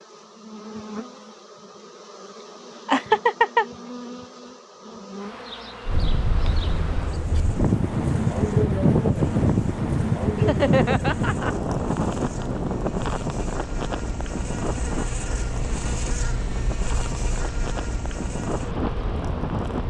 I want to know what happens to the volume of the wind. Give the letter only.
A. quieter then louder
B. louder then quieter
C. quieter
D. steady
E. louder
C.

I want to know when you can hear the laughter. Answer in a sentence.
You can hear the laughter from 2.9 to 3.6 s and from 10.3 to 11.6 s.